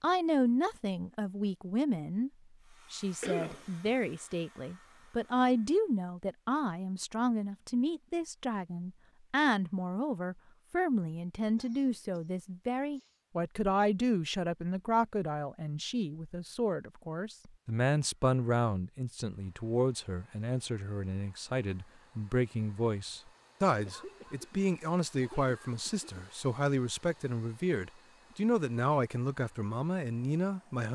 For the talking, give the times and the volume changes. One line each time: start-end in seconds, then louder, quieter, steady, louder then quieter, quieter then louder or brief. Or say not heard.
0.0-2.3 brief
2.9-30.9 steady.